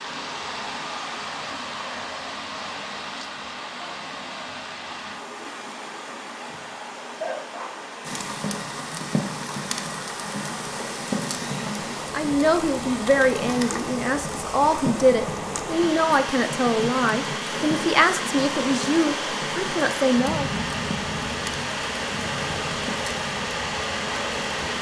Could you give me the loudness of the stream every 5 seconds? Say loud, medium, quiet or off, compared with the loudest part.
medium, medium, medium, loud, loud.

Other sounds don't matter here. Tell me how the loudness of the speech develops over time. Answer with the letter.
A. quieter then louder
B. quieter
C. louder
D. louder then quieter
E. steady
E.